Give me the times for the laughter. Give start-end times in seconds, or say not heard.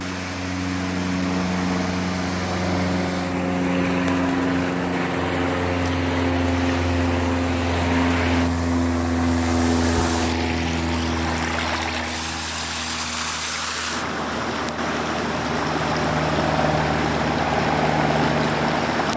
not heard.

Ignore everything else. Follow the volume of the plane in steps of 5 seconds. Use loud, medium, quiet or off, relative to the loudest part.
loud, loud, medium, loud.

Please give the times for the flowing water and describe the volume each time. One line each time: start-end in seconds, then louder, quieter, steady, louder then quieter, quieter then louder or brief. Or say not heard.
0.0-19.1 louder.